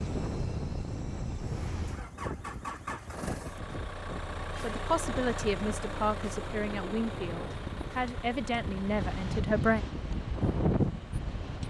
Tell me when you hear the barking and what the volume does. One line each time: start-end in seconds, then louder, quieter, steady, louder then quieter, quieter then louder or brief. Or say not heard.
not heard.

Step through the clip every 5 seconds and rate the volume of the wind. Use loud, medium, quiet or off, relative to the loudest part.
medium, medium, loud.